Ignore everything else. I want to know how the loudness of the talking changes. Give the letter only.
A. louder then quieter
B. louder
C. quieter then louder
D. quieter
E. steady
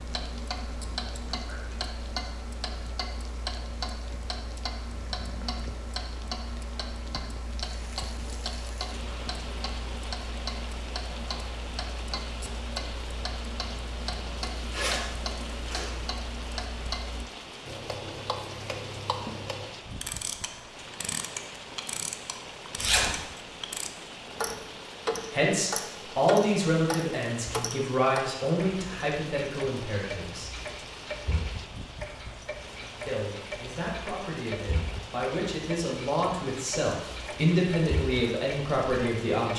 C.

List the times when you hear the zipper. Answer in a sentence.
You can hear the zipper from 14.6 to 15.9 s and from 22.8 to 23.2 s.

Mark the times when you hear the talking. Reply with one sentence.
The talking can be heard from 25.3 to 30.6 s and from 33.0 to 39.5 s.